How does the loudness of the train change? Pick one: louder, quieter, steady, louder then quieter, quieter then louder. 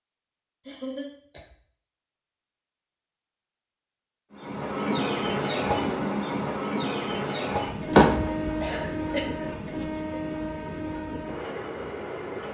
quieter.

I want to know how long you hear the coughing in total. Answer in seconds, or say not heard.
2 s.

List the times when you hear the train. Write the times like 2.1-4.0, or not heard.
4.3-12.4.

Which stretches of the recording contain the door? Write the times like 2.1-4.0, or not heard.
7.9-8.5.